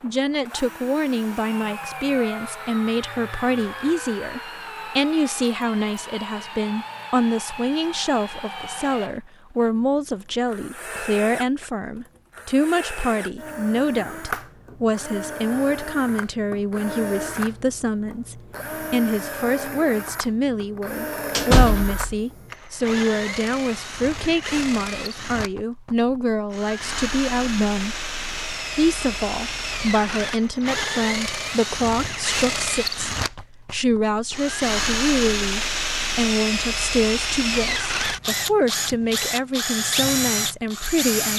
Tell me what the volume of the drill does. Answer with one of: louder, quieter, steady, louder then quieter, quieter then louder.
louder.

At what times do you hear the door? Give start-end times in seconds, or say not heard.
21.4-22.1.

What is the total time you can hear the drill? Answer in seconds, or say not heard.
41 s.